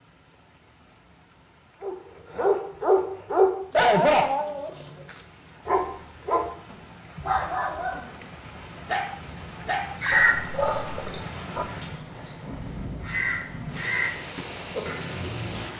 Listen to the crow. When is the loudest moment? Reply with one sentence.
The loudest moment of the crow is at 10 seconds.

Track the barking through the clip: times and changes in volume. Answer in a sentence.
The barking can be heard from 1.8 to 11.7 s, getting quieter.